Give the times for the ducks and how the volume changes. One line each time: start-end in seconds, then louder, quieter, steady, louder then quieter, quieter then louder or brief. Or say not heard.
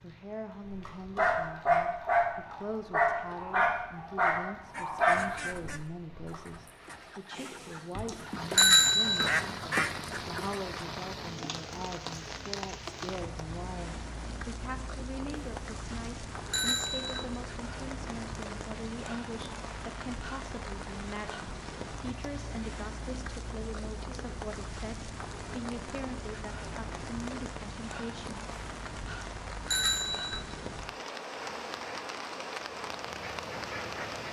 4.7-10.8 quieter then louder
31.2-34.2 brief.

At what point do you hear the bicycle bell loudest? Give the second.
9 s.